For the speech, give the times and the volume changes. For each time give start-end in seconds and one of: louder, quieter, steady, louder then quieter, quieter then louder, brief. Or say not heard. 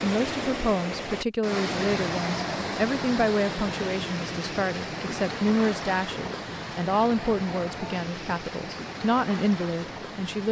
0.0-10.4 steady.